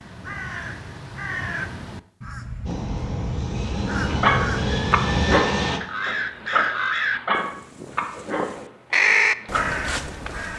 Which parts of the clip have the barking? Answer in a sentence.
You can hear the barking from 4.0 to 9.8 s.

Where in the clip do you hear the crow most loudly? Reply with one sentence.
The volume of the crow peaks at 9 seconds.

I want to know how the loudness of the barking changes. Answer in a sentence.
The volume of the barking goes down.